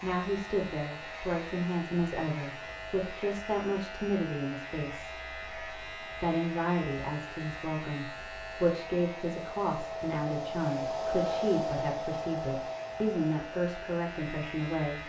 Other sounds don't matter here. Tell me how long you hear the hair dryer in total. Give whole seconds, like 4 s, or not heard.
15 s.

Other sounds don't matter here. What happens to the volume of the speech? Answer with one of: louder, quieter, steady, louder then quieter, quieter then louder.
steady.